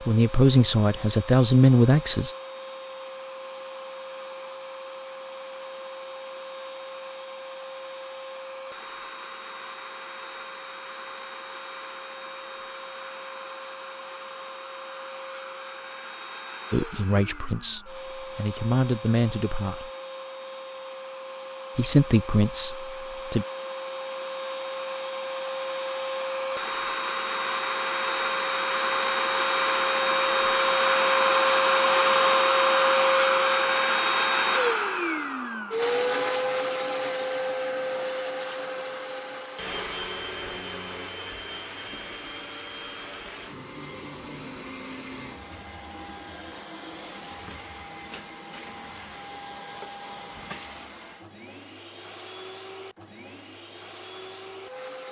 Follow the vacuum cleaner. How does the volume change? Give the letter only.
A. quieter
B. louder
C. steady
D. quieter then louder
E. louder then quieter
E.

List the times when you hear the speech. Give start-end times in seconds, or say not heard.
0.1-2.4, 16.7-19.9, 21.8-23.4.